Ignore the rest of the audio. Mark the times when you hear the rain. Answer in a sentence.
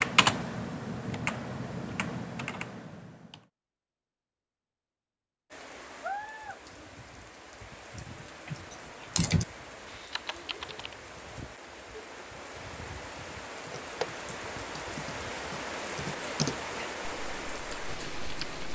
The rain can be heard from 5.5 to 18.6 s.